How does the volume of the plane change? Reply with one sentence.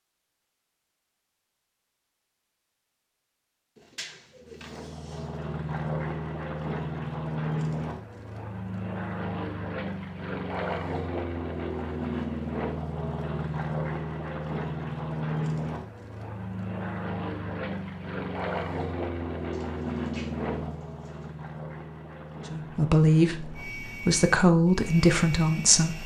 The volume of the plane goes down.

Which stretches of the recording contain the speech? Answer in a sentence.
You can hear the speech from 22.5 to 26.0 s.